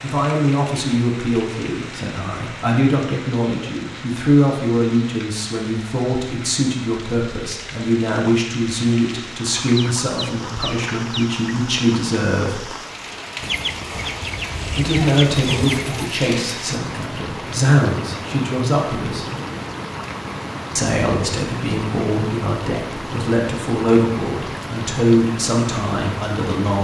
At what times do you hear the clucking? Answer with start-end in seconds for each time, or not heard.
9.5-11.4, 13.4-16.2.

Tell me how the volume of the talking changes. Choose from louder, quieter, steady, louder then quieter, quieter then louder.
steady.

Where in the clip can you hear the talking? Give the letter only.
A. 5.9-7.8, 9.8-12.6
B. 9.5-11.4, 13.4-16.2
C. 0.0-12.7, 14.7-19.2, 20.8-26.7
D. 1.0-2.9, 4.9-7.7
C.